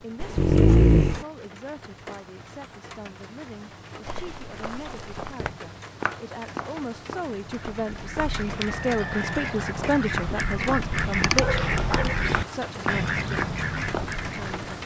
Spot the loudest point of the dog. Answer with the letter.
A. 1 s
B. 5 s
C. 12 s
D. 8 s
A.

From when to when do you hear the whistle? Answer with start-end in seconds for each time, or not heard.
8.7-9.9.